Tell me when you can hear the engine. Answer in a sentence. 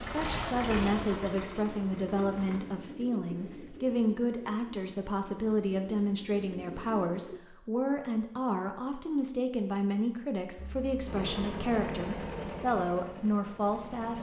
You can hear the engine from 0.0 to 2.6 s and from 10.6 to 14.1 s.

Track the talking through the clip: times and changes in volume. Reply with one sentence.
The talking can be heard from 0.0 to 14.1 s, at a steady volume.